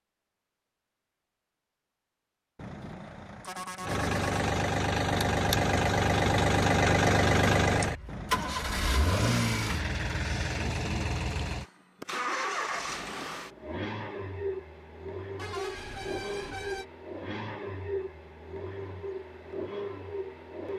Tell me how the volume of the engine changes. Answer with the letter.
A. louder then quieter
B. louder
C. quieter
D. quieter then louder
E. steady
C.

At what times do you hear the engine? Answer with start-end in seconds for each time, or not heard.
3.8-20.7.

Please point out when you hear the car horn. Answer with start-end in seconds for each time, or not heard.
2.5-4.3, 8.1-8.8, 15.3-16.9.